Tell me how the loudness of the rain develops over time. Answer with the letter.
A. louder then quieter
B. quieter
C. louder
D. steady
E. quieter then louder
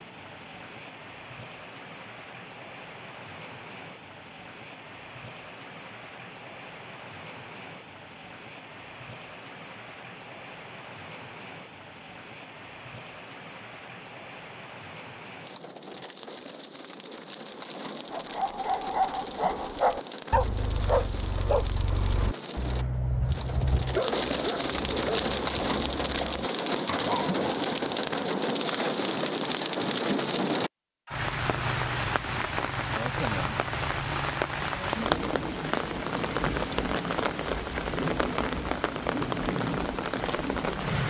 C.